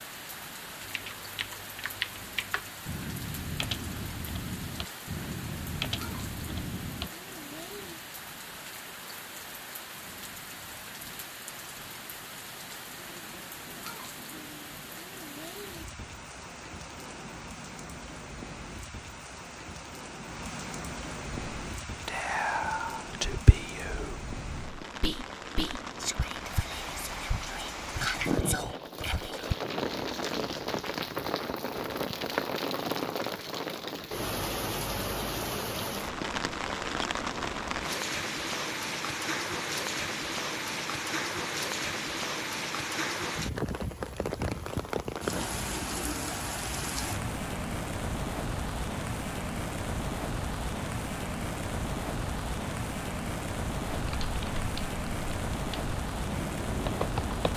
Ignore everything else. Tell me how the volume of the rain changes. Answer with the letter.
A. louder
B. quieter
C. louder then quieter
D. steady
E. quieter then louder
A.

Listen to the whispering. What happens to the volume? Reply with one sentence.
The loudness of the whispering goes down, then up.